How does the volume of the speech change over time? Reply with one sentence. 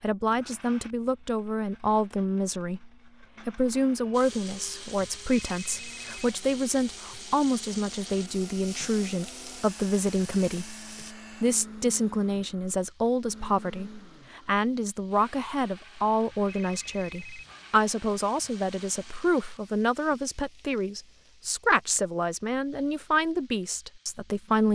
The loudness of the speech stays about the same.